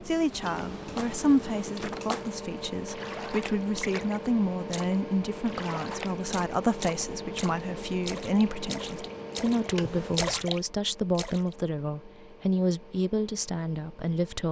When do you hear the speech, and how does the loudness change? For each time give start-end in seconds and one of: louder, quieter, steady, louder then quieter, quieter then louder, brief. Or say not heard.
0.0-14.4 steady.